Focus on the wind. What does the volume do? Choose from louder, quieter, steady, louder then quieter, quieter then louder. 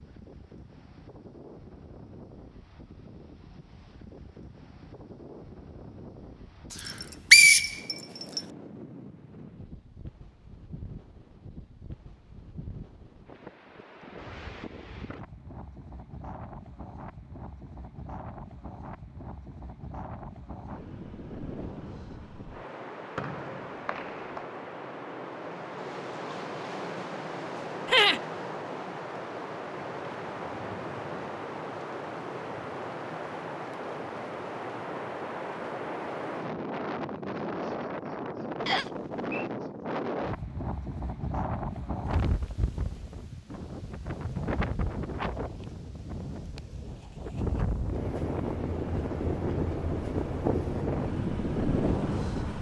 louder.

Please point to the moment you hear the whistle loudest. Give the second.
7 s.